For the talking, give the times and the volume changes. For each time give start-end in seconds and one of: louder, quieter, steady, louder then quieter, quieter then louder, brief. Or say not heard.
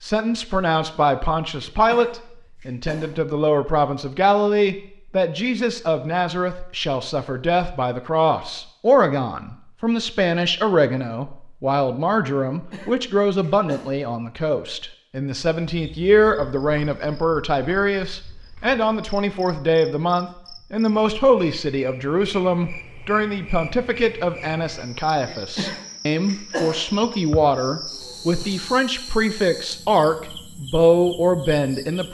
0.0-32.0 steady.